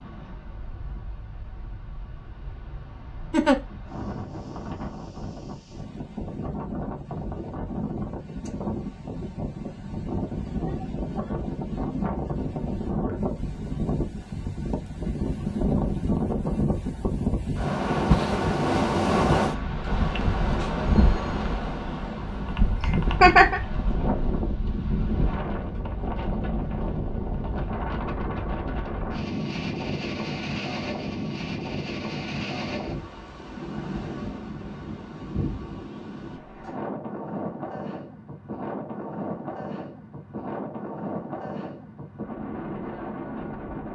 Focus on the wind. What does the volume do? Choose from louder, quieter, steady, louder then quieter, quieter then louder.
louder then quieter.